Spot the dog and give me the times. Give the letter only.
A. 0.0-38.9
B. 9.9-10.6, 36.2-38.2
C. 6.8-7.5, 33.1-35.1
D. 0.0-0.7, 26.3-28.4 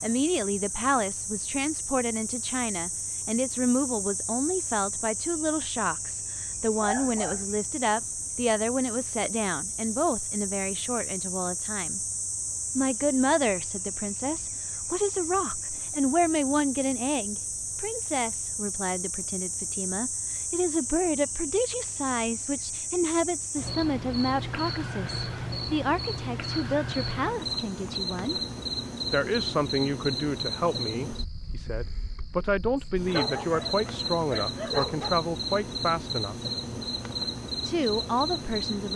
C.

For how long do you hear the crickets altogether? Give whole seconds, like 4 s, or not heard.
39 s.